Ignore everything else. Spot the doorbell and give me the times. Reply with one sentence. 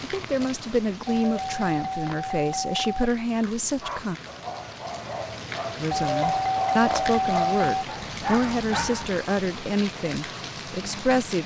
The doorbell can be heard from 1.1 to 3.1 s and from 5.9 to 7.8 s.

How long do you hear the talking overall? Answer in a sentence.
The talking can be heard for 10 seconds in total.